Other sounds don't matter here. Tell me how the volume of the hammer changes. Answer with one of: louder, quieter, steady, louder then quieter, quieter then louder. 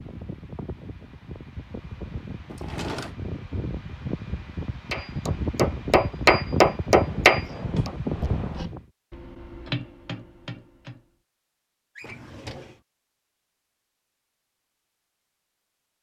quieter then louder.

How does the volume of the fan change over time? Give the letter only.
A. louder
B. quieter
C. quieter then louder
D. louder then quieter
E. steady
A.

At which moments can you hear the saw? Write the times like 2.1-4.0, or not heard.
not heard.